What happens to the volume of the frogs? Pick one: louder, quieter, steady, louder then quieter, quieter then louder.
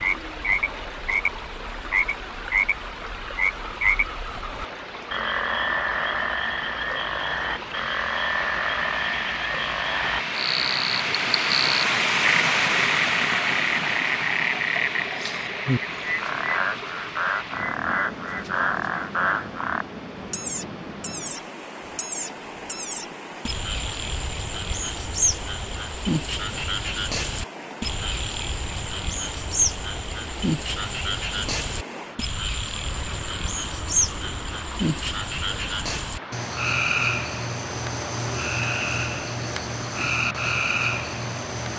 steady.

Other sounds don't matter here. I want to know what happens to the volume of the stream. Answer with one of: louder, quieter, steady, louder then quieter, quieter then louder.
louder then quieter.